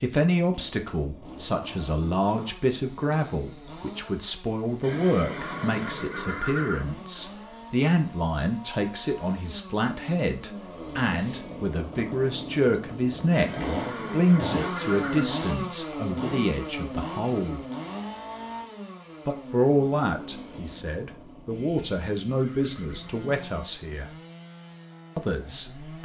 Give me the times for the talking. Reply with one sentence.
You can hear the talking from 0.0 to 17.6 s, from 19.2 to 24.1 s and from 25.1 to 26.0 s.